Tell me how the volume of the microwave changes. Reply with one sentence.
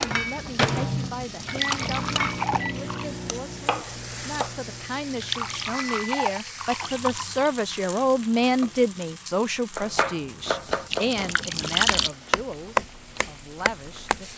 The loudness of the microwave goes down.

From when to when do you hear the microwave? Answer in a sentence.
You can hear the microwave from 0.0 to 6.3 s.